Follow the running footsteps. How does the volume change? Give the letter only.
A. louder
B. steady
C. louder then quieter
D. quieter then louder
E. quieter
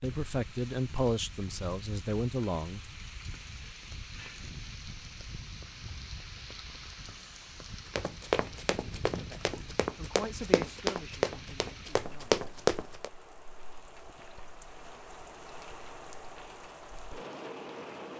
A.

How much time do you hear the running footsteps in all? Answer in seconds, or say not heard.
5 s.